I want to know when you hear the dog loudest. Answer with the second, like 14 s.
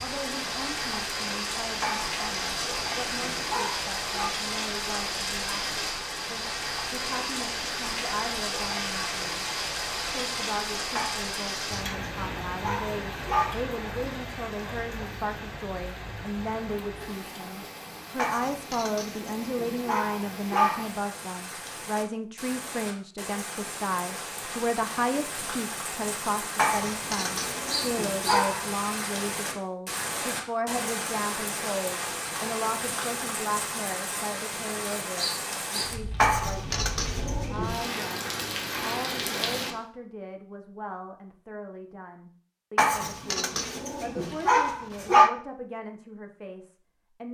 45 s.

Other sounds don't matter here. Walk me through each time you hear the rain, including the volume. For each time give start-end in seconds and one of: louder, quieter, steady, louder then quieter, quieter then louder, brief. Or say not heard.
0.0-39.8 quieter then louder.